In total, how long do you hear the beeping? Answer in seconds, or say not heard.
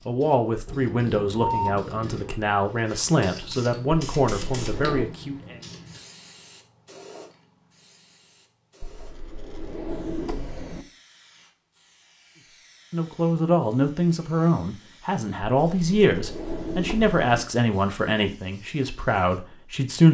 2 s.